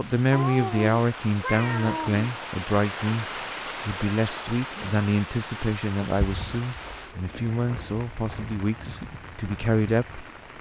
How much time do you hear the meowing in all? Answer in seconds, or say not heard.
4 s.